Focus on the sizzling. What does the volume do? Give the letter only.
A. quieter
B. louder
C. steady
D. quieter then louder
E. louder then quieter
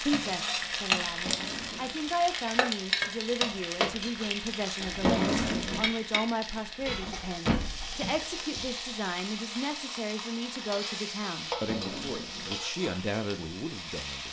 A.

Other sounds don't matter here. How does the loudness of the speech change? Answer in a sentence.
The loudness of the speech stays about the same.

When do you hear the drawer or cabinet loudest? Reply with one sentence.
The loudest moment of the drawer or cabinet is at 5 seconds.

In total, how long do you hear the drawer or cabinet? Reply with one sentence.
The drawer or cabinet can be heard for 3 seconds in total.